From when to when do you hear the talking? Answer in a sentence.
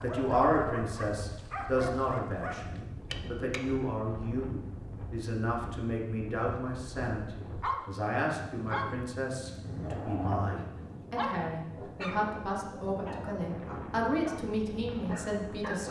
The talking can be heard from 0.0 to 15.8 s.